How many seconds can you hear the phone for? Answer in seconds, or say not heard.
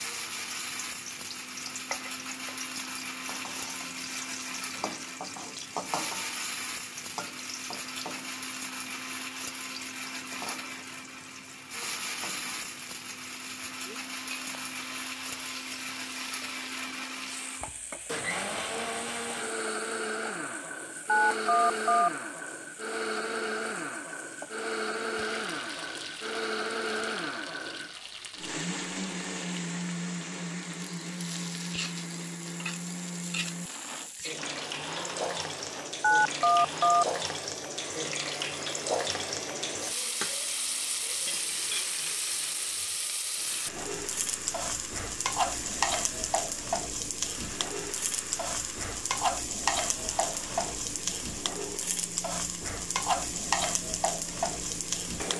2 s.